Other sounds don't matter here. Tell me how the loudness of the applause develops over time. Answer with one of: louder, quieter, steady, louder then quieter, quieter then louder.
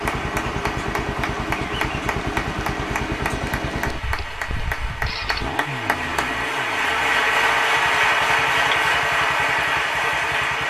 louder.